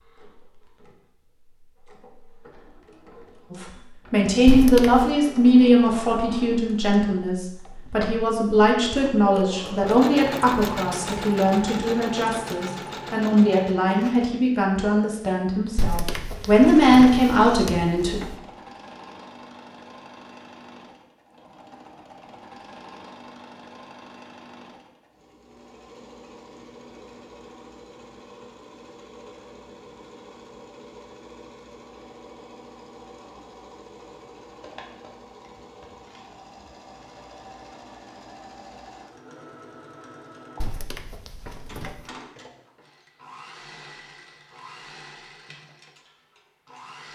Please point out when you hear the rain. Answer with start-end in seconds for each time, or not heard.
not heard.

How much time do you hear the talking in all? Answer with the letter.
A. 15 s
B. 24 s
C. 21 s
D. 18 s
A.